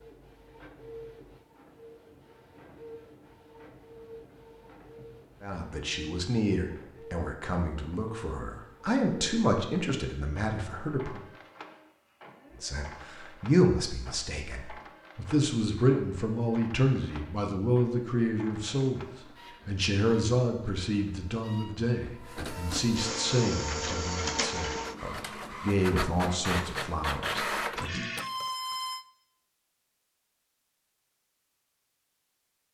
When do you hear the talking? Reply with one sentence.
You can hear the talking from 5.4 to 11.2 s, from 12.6 to 19.0 s and from 19.6 to 28.1 s.